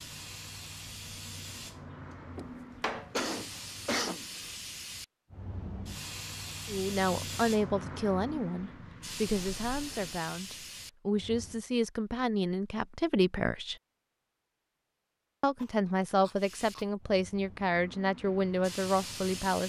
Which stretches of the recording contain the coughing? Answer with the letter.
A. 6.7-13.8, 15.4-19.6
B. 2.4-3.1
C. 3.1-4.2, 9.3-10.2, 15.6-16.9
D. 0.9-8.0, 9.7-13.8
C.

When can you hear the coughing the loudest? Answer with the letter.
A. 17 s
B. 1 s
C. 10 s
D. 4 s
D.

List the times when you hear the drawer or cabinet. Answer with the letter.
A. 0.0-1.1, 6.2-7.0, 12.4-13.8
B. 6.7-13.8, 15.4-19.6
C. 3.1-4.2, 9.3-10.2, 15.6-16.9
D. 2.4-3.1
D.